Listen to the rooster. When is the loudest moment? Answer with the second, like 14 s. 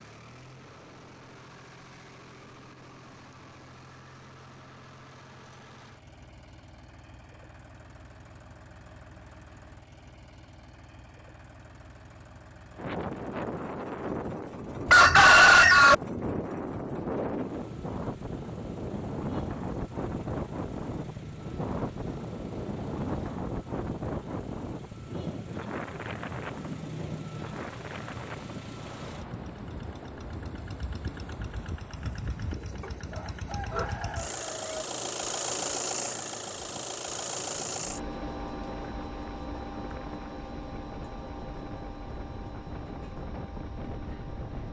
15 s.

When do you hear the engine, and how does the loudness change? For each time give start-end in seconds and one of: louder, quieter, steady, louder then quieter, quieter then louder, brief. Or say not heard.
0.0-44.6 louder.